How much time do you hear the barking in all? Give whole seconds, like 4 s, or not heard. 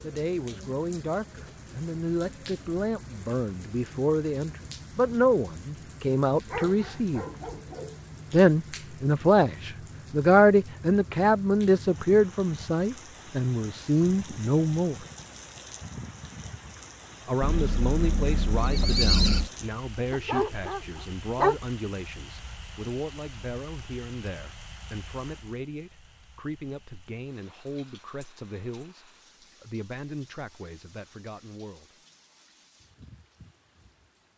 3 s.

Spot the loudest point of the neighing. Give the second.
19 s.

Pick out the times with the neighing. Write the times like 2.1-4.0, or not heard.
17.4-19.5.